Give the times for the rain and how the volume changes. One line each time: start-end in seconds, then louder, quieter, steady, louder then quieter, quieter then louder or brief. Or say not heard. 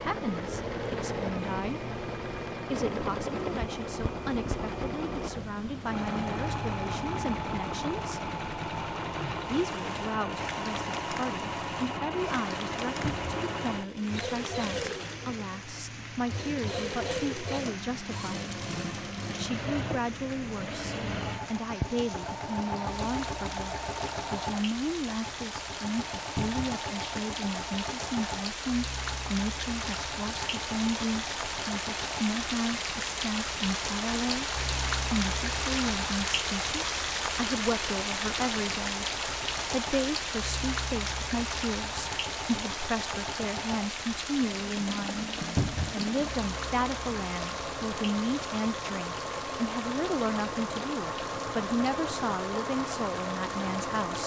0.0-54.2 louder then quieter.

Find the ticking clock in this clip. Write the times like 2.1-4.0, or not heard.
not heard.